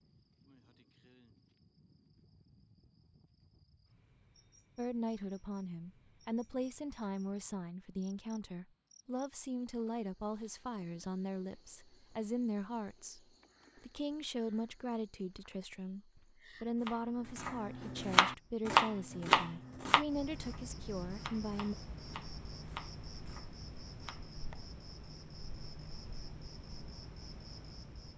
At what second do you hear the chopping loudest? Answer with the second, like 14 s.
19 s.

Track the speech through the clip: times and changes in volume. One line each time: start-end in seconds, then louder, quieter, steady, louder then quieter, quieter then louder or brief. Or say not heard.
4.8-21.8 steady.